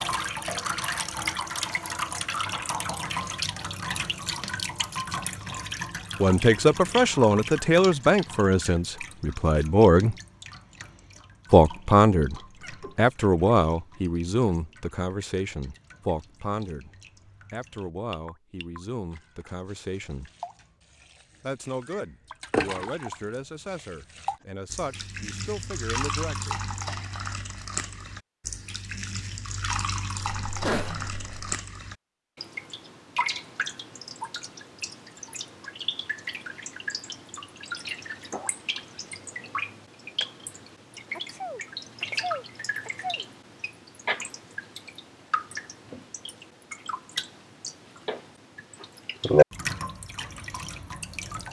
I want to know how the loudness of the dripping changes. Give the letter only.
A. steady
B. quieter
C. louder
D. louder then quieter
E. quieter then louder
E.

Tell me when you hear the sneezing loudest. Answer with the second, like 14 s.
31 s.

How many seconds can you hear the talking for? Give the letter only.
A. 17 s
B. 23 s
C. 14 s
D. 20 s
A.